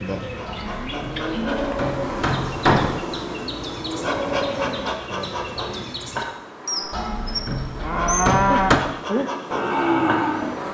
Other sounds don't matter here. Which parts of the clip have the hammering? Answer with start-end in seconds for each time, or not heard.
0.5-3.0, 6.9-8.8.